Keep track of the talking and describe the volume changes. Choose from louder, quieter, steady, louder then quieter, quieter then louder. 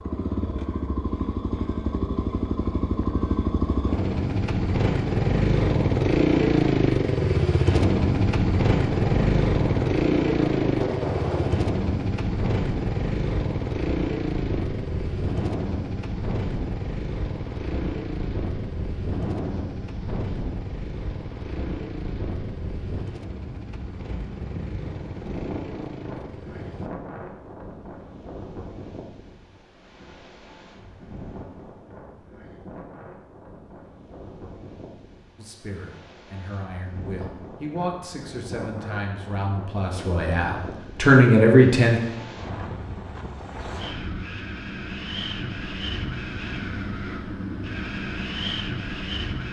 louder.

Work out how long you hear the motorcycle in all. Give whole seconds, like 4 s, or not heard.
27 s.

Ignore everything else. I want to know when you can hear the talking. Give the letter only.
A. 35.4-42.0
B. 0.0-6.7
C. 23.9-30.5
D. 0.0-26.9
A.